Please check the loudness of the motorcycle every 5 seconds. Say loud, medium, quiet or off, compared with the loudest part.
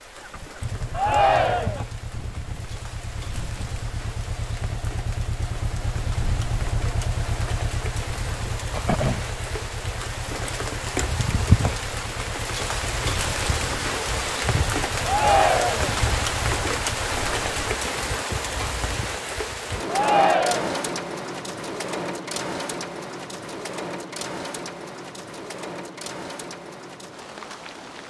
medium, loud, medium, medium, off, off.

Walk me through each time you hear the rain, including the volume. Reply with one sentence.
The rain can be heard from 0.0 to 28.0 s, getting louder then quieter.